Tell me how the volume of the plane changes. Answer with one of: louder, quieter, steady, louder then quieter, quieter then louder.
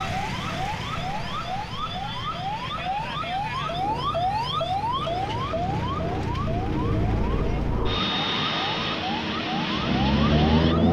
louder.